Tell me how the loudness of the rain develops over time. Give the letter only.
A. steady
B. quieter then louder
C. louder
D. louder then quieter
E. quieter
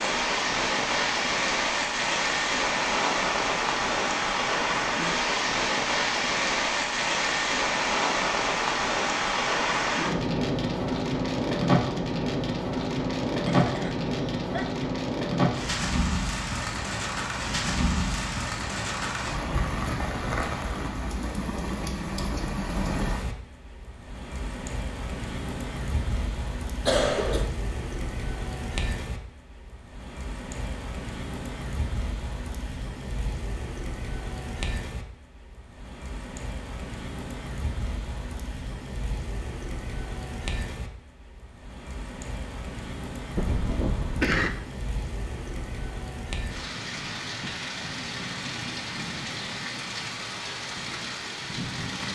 E.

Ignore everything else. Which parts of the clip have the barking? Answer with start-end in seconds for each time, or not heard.
not heard.